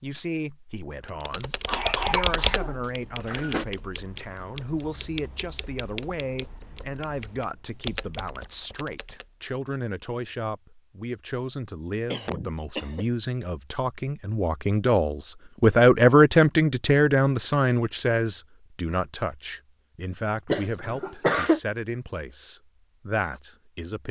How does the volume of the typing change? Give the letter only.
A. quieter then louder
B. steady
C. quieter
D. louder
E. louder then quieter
A.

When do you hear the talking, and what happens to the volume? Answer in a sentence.
The talking can be heard from 0.0 to 24.0 s, getting louder then quieter.